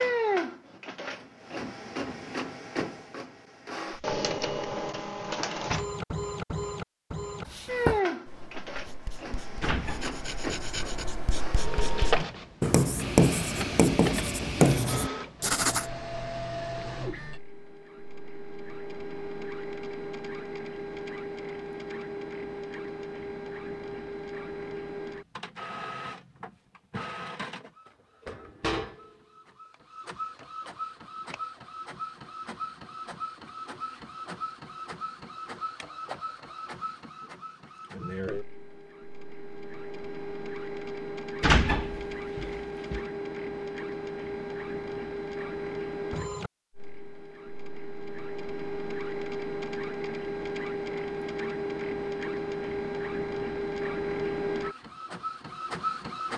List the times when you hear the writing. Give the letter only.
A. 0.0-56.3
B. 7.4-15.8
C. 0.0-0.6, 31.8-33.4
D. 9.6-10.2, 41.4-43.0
B.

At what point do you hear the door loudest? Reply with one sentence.
The volume of the door peaks at 42 seconds.